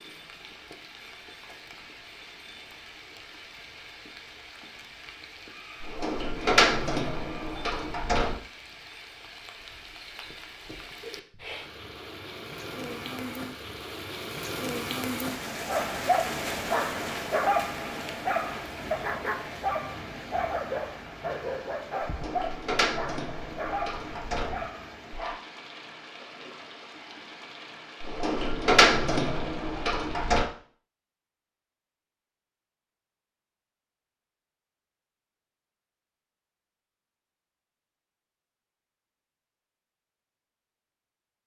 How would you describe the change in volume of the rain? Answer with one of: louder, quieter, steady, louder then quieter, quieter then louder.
louder then quieter.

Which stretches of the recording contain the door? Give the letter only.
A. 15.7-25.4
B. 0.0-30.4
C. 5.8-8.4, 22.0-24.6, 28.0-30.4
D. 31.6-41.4
C.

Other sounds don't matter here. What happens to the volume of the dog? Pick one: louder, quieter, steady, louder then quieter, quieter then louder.
quieter.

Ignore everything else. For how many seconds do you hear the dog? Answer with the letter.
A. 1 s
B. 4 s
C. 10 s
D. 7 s
C.